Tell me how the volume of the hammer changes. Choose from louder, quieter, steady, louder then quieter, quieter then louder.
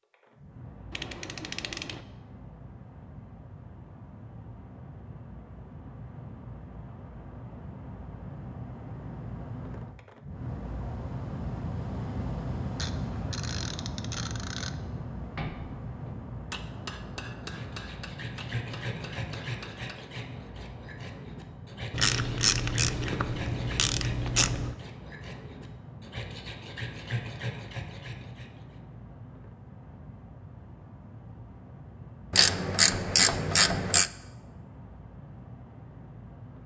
louder then quieter.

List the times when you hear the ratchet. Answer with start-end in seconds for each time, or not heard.
0.9-2.0, 12.8-14.8, 21.9-24.8, 32.3-34.1.